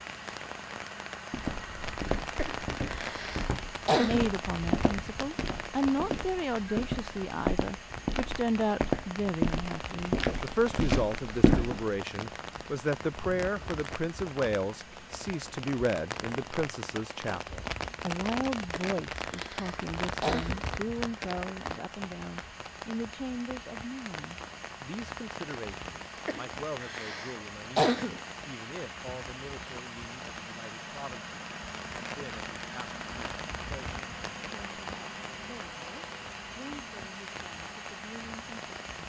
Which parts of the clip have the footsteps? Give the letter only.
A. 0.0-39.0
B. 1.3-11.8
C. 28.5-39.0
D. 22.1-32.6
B.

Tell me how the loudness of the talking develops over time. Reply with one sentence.
The loudness of the talking goes down.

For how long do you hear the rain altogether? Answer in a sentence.
You can hear the rain for 39 seconds altogether.